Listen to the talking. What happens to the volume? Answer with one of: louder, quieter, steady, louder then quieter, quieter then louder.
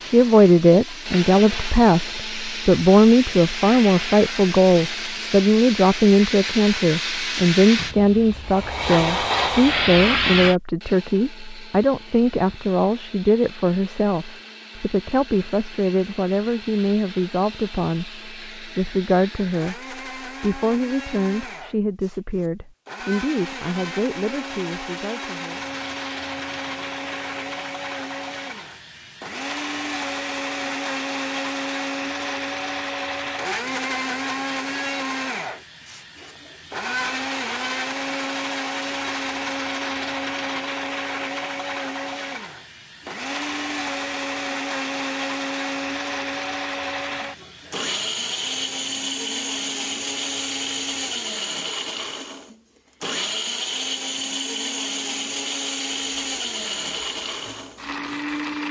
quieter.